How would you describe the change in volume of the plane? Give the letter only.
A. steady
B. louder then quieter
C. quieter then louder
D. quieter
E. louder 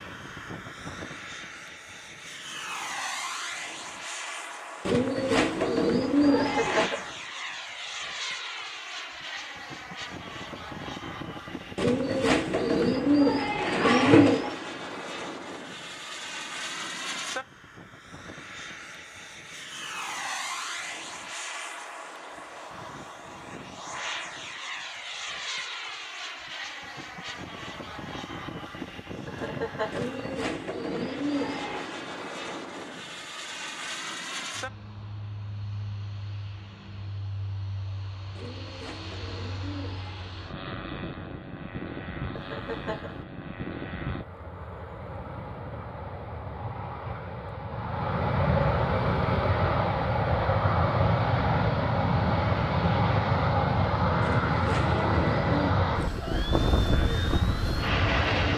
E.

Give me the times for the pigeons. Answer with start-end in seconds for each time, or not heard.
4.8-6.9, 11.8-14.6, 29.9-31.9, 38.4-40.4, 54.2-55.8.